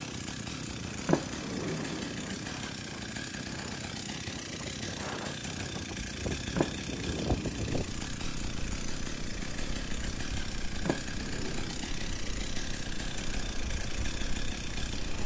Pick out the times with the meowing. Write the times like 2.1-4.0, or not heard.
not heard.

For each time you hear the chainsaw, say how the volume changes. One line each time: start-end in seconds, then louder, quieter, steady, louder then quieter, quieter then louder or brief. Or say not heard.
0.0-15.2 steady.